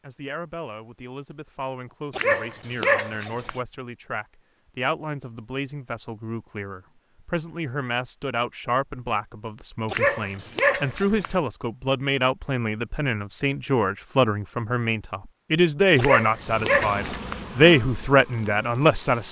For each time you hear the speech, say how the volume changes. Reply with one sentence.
The speech can be heard from 0.0 to 19.2 s, getting louder.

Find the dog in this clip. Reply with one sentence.
The dog can be heard from 2.1 to 3.6 s, from 9.9 to 11.3 s and from 15.9 to 17.4 s.